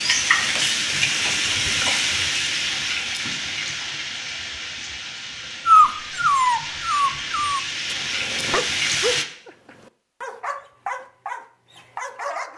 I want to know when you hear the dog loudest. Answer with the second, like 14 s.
6 s.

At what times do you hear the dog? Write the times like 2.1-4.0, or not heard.
5.7-12.5.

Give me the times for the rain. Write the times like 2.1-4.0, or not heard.
0.0-9.2.